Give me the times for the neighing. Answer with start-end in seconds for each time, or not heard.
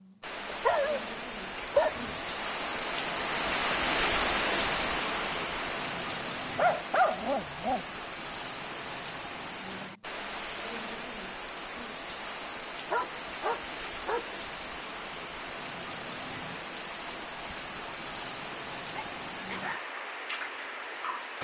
not heard.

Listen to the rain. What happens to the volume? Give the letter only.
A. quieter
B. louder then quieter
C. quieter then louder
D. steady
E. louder
A.